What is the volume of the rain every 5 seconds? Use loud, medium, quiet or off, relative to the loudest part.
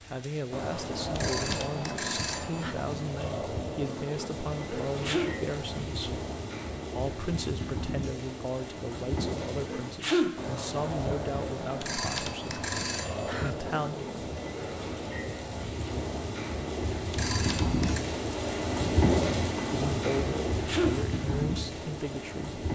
medium, medium, medium, loud, loud.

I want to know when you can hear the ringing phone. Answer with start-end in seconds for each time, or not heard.
1.1-2.8, 11.8-13.6, 17.1-18.1.